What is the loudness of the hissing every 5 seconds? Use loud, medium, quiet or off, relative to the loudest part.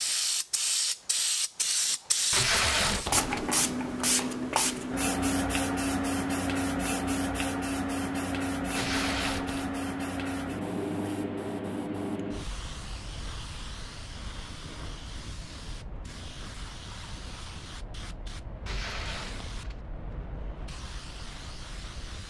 loud, loud, medium, quiet, quiet.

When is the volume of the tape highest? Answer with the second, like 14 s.
3 s.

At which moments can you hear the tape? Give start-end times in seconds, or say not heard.
2.3-3.5, 8.7-9.7, 18.6-19.8.